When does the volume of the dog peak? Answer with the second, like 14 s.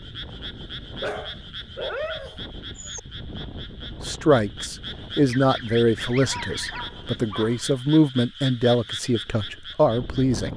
2 s.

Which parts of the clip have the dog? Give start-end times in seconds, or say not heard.
1.0-3.0, 6.2-7.7.